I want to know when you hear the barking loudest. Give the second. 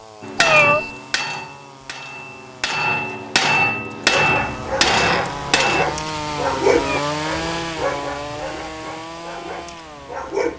7 s.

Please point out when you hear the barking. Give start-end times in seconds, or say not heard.
4.0-10.5.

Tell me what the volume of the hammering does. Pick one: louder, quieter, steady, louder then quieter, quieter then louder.
quieter then louder.